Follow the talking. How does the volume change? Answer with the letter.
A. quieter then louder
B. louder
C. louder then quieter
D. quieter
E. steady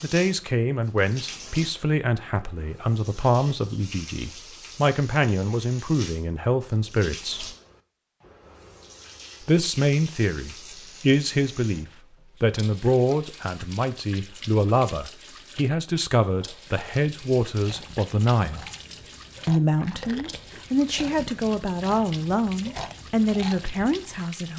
E.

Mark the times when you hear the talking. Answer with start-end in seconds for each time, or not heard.
0.0-7.5, 9.4-18.6, 19.4-24.5.